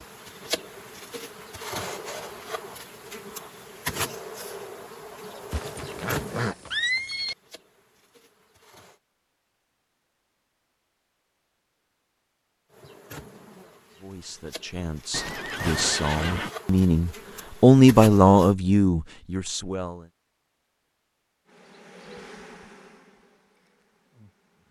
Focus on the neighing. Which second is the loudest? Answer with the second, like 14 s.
7 s.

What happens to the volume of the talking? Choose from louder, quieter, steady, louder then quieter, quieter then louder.
louder then quieter.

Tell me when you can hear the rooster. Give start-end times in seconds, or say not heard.
not heard.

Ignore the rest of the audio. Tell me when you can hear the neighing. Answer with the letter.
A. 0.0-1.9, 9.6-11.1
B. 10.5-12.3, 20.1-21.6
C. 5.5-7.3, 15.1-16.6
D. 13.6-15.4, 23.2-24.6
C.